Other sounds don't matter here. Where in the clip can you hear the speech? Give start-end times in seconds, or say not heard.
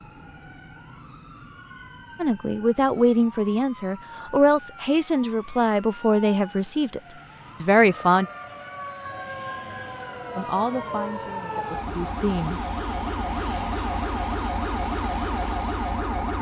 2.2-7.0, 7.6-8.2, 10.3-12.6.